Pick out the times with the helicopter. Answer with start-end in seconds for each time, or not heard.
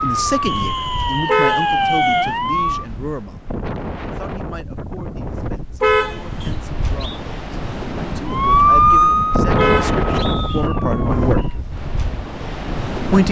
not heard.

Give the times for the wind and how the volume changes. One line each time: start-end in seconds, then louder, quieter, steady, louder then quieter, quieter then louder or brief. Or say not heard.
0.0-13.2 louder.